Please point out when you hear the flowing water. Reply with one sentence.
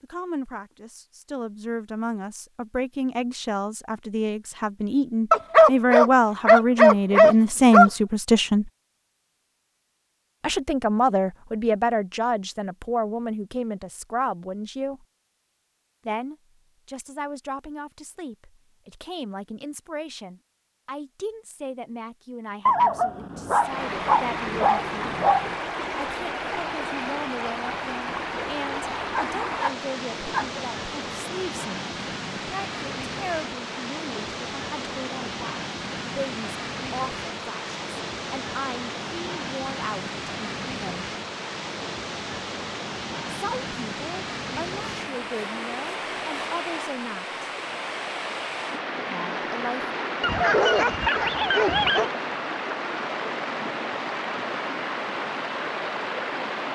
The flowing water can be heard from 23.6 to 56.7 s.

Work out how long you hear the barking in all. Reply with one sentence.
You can hear the barking for 9 seconds altogether.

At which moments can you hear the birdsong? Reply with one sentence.
You can't hear the birdsong here.